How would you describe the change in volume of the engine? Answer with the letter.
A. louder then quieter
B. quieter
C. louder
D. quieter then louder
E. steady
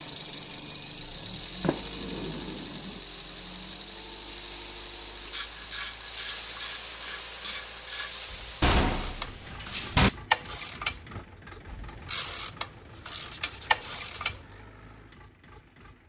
B.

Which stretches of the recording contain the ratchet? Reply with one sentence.
You can hear the ratchet from 5.3 to 14.5 s.